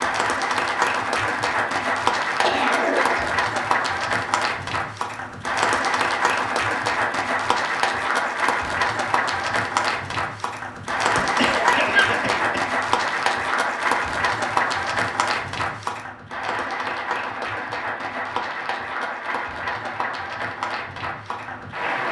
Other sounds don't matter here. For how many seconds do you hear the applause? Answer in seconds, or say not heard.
22 s.